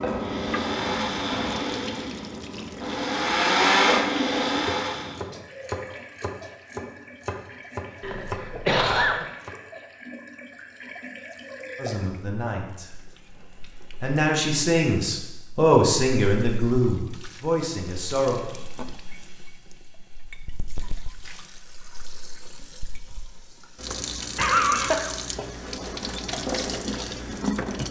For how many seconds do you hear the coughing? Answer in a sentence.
The coughing can be heard for 2 seconds in total.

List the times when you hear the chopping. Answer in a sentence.
You can hear the chopping from 4.6 to 9.6 s.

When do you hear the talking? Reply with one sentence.
You can hear the talking from 11.8 to 12.9 s and from 14.0 to 18.4 s.